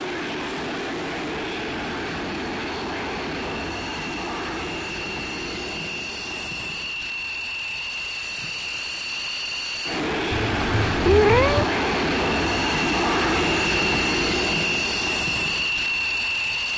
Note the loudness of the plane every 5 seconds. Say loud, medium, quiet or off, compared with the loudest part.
medium, medium, loud, loud.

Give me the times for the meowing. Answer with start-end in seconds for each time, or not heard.
10.3-11.7.